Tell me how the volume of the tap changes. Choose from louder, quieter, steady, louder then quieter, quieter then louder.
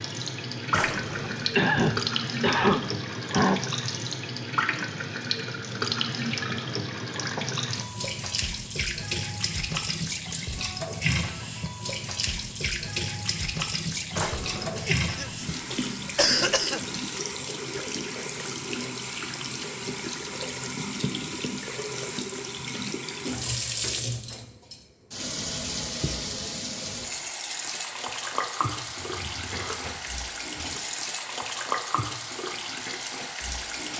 steady.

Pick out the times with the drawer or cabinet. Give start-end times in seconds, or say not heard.
0.7-1.6, 14.1-14.9, 29.0-30.8.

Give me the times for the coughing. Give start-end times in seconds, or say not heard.
1.6-3.6, 14.8-17.0, 29.5-29.9.